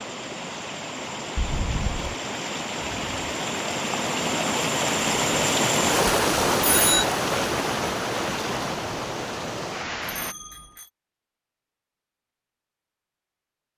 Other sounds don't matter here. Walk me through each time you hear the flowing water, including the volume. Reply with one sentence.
The flowing water can be heard from 0.0 to 10.3 s, getting louder then quieter.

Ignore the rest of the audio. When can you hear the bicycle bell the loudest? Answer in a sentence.
The volume of the bicycle bell peaks at 7 seconds.